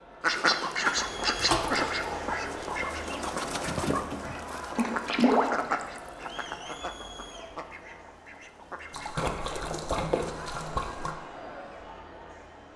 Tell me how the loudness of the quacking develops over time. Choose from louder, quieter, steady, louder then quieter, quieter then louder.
quieter.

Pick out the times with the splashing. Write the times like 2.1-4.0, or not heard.
1.4-1.9, 4.8-6.5, 8.9-11.2.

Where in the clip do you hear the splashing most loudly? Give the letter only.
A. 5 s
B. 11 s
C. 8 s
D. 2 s
A.